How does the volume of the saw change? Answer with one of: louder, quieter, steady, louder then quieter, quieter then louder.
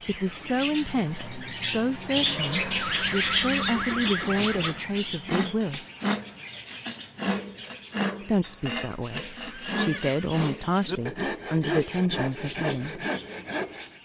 steady.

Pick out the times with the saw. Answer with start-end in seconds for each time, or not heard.
5.0-13.9.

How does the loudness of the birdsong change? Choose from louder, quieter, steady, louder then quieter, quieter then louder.
quieter.